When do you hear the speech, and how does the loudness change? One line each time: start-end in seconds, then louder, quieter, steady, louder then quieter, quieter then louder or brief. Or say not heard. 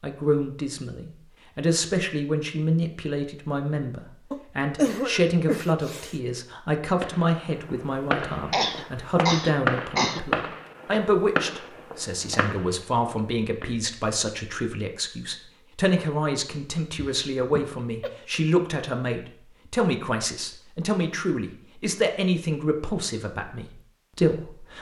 0.0-24.7 steady.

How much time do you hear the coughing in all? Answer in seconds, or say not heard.
5 s.